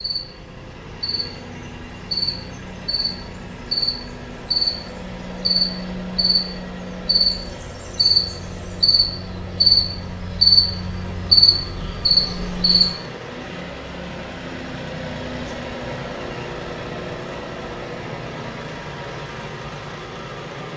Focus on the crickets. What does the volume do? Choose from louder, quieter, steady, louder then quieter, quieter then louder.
louder.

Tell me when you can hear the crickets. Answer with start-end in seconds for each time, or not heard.
0.0-12.9.